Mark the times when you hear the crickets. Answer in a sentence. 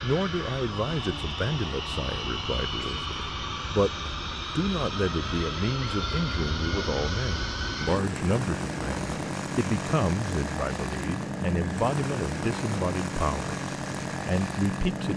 The crickets can't be heard in this clip.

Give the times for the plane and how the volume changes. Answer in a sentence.
The plane can be heard from 0.0 to 15.1 s, at a steady volume.